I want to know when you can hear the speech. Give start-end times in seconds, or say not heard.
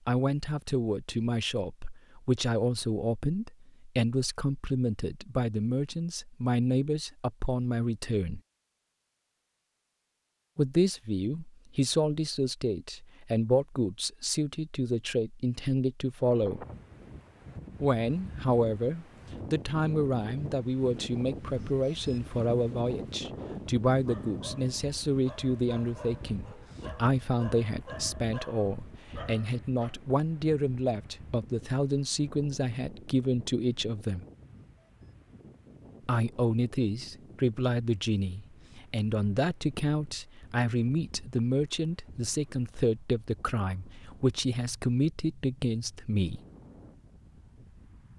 0.1-8.4, 10.6-16.6, 17.8-34.2, 36.0-46.4.